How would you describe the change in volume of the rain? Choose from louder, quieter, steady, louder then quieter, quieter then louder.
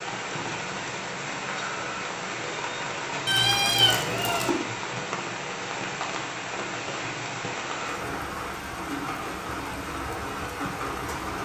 steady.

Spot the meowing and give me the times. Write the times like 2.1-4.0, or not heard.
3.2-4.5.